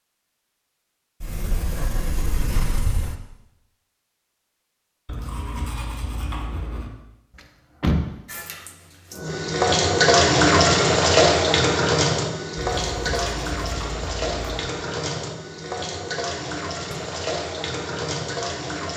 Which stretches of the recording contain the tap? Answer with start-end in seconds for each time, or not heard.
8.2-18.9.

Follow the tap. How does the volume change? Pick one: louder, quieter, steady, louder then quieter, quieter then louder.
quieter.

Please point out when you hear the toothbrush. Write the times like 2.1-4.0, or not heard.
5.0-6.9, 12.6-14.6.